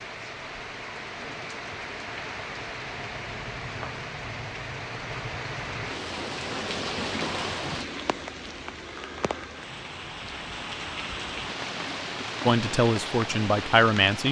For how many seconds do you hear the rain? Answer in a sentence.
The rain can be heard for 14 seconds in total.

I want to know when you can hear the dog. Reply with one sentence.
The dog can't be heard in this clip.